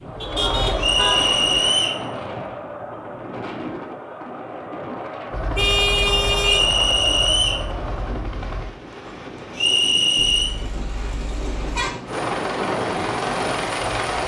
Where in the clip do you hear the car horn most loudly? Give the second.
6 s.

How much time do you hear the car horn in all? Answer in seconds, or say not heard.
4 s.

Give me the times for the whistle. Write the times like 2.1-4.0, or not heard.
0.8-2.0, 6.5-7.7, 9.6-10.6.